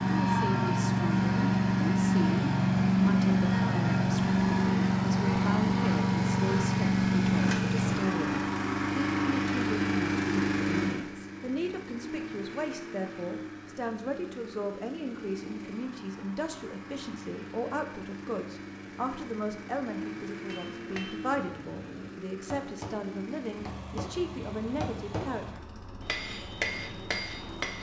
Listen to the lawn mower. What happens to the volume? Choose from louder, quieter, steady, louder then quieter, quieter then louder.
quieter.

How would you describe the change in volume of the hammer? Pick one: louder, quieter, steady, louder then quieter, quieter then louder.
louder.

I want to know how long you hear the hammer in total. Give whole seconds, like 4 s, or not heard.
7 s.